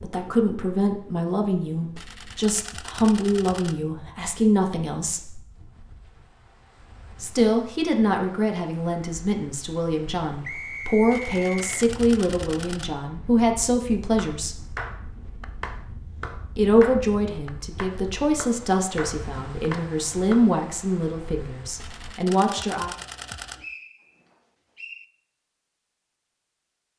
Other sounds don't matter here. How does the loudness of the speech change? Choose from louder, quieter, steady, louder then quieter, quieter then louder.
steady.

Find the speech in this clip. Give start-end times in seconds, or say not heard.
0.0-5.4, 7.2-14.7, 16.6-22.9.